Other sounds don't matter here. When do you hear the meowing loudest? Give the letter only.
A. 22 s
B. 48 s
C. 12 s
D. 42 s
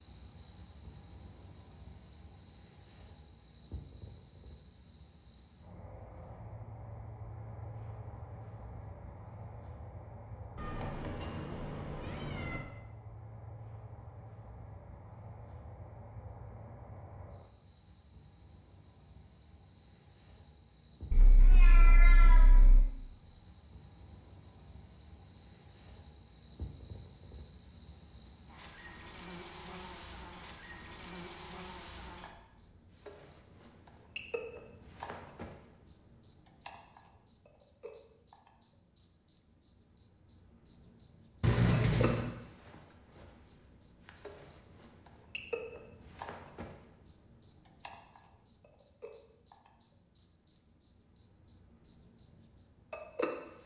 D.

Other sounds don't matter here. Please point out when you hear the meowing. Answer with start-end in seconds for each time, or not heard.
10.6-12.6, 21.1-22.9, 41.4-42.2.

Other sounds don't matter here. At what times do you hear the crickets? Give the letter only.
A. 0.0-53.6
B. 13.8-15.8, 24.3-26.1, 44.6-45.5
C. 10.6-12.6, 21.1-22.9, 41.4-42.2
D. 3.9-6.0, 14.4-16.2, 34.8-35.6
A.